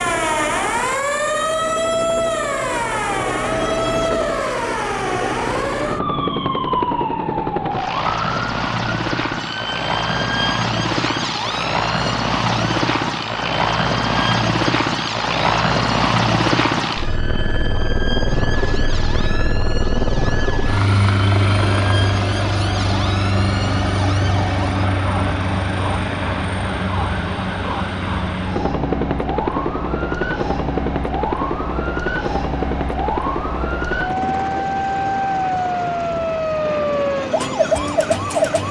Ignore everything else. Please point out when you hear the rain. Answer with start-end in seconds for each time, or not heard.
not heard.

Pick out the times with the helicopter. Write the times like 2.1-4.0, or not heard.
0.0-38.6.